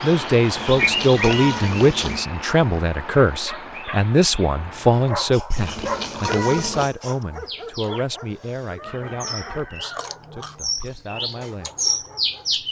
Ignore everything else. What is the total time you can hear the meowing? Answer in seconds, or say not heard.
4 s.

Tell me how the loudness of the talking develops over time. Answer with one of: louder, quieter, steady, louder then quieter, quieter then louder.
quieter.